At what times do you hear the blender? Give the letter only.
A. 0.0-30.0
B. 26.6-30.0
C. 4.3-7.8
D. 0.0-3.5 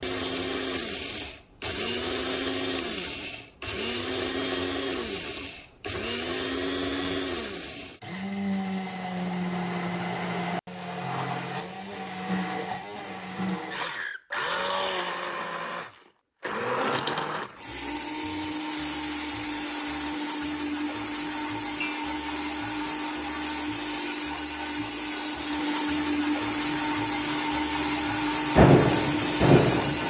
A.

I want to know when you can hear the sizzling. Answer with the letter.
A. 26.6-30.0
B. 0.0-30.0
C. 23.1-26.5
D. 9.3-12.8
A.